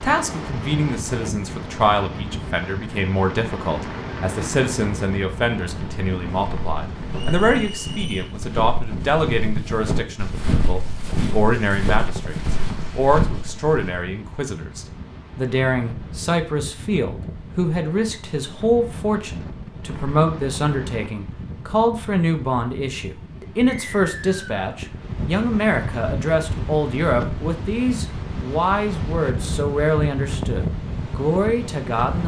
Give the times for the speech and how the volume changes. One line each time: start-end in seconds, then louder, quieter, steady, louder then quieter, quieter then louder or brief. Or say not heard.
0.0-32.2 steady.